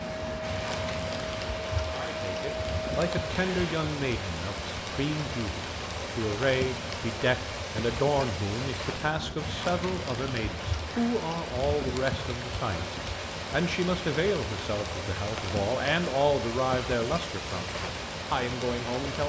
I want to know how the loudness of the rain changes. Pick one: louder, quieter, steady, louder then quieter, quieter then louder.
steady.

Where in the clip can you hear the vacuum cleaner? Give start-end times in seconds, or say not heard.
0.0-3.8.